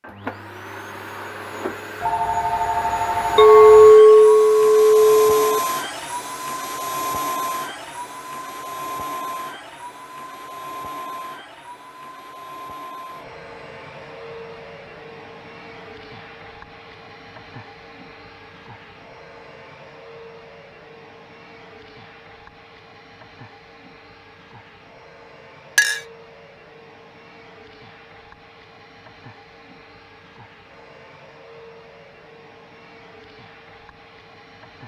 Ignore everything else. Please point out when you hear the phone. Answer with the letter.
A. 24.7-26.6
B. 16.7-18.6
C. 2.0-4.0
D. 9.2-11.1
C.